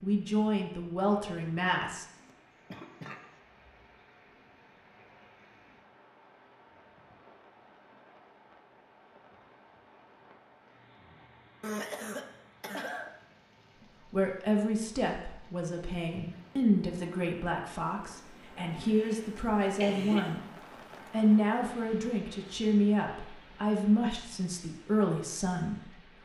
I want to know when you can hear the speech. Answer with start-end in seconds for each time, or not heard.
0.0-2.0, 14.1-20.5, 21.1-26.2.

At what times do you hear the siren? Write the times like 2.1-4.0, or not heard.
not heard.